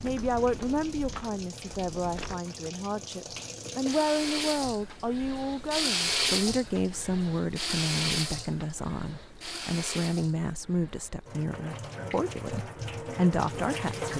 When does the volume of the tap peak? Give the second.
6 s.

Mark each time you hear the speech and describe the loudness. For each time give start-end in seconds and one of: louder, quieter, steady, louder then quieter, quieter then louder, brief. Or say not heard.
0.0-14.1 steady.